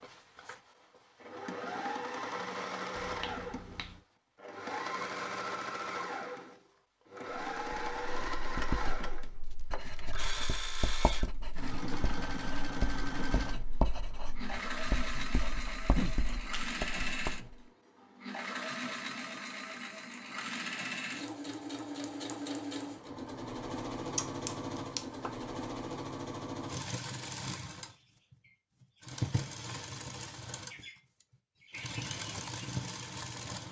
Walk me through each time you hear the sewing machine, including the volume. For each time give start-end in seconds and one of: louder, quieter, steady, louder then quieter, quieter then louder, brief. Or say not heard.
0.0-33.6 steady.